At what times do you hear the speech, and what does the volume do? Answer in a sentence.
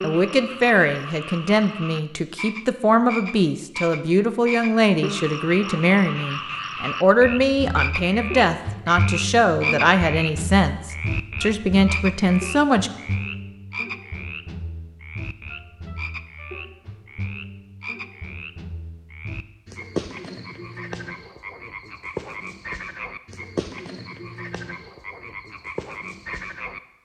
The speech can be heard from 0.0 to 12.9 s, at a steady volume.